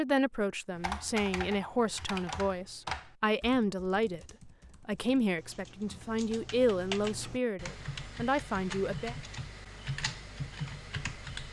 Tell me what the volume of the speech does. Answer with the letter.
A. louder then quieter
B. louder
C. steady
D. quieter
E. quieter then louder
C.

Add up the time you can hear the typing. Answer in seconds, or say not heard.
11 s.